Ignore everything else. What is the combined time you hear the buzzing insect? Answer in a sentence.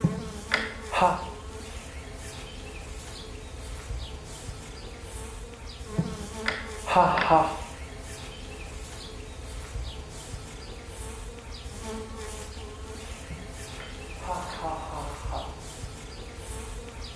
You can hear the buzzing insect for 17 seconds altogether.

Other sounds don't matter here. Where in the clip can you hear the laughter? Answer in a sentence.
You can hear the laughter from 0.0 to 1.2 s, from 6.0 to 7.5 s and from 13.3 to 15.5 s.